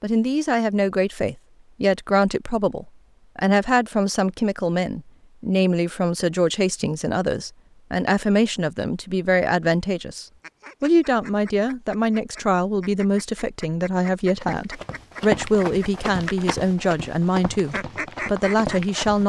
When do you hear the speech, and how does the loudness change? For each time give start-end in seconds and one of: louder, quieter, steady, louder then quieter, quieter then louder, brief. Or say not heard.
0.0-19.2 steady.